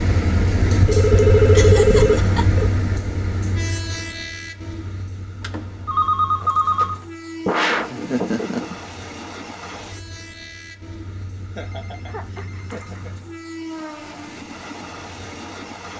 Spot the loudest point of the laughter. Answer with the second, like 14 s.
8 s.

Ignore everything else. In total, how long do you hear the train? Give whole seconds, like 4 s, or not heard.
16 s.